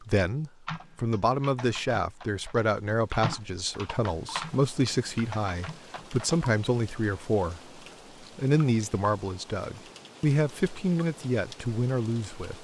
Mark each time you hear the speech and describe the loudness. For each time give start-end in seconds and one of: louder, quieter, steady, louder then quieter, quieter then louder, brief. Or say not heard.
0.0-12.6 steady.